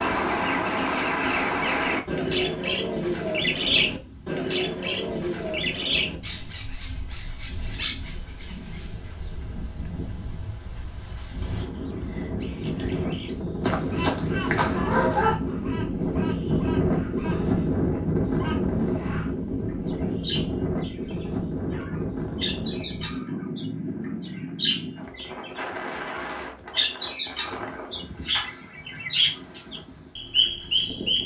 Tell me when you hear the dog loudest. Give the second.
15 s.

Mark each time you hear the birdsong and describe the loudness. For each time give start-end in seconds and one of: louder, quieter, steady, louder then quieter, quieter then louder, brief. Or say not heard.
0.0-31.2 quieter then louder.